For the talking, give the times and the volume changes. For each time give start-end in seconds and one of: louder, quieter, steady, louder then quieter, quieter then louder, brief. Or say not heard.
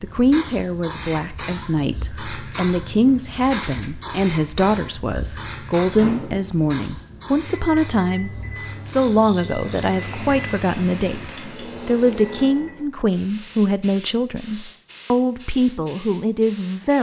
0.0-16.9 steady.